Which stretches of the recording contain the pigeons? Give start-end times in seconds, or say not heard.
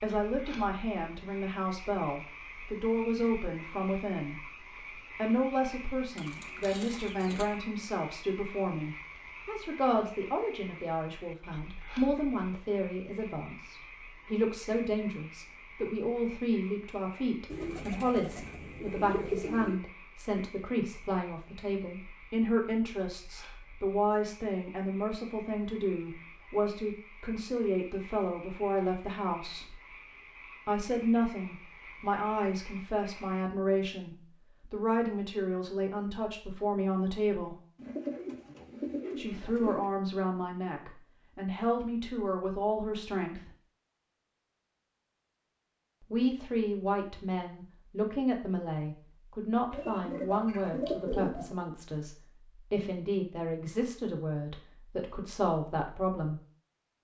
6.2-7.5, 17.4-19.8, 37.8-39.9, 49.7-51.5.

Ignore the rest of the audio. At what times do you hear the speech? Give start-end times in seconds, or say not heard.
0.0-29.8, 30.6-37.6, 39.1-43.5, 46.1-56.4.